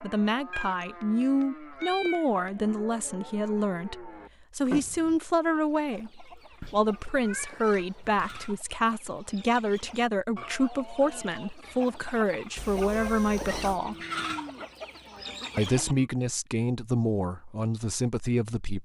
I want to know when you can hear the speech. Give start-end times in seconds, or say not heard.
0.0-13.9, 15.6-18.7.